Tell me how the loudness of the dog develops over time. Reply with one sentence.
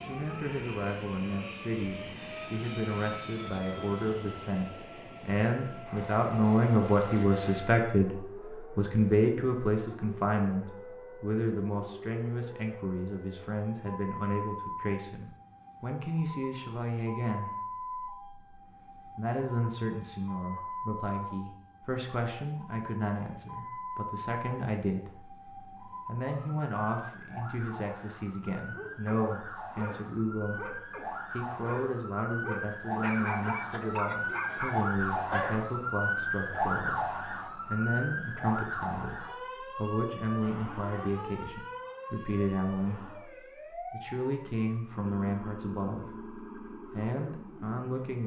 The volume of the dog goes up.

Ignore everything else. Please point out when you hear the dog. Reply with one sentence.
You can hear the dog from 28.6 to 35.8 s.